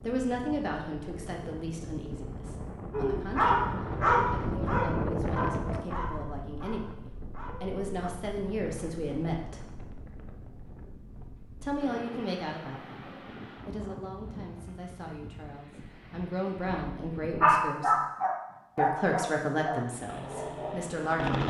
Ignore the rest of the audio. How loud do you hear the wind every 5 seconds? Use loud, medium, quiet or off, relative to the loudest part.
loud, loud, medium, medium, off.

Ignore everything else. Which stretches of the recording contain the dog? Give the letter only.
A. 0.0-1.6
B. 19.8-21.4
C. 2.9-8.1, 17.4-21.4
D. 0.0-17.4
C.